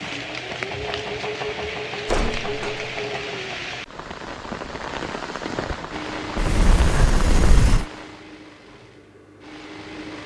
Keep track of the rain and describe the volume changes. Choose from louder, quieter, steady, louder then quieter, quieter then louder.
steady.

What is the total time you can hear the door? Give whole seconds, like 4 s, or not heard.
2 s.